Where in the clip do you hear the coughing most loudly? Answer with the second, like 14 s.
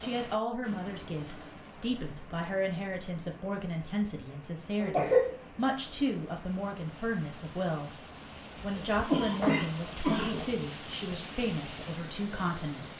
5 s.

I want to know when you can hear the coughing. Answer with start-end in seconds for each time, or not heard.
0.7-1.6, 4.8-5.3, 9.1-10.4.